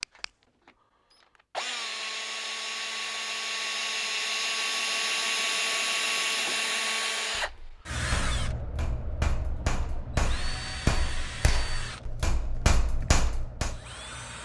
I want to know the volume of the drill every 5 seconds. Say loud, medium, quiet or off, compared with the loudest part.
loud, loud, medium.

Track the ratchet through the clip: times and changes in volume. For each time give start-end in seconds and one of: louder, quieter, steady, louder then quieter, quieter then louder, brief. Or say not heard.
not heard.